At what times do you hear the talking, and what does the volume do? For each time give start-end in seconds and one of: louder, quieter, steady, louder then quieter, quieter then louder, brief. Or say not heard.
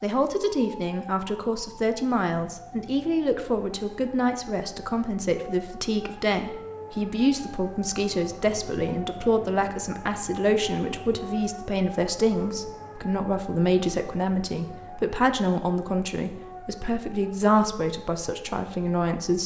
0.0-19.4 steady.